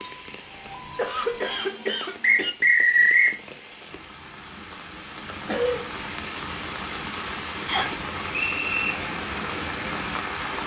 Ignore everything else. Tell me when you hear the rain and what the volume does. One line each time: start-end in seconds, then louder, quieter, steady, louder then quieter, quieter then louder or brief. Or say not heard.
0.0-10.6 louder.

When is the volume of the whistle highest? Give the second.
3 s.